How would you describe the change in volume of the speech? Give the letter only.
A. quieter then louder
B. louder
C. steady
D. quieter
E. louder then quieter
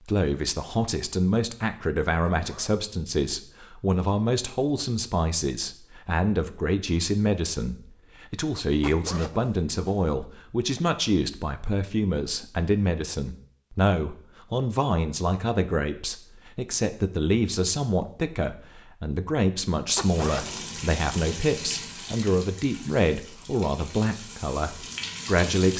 C.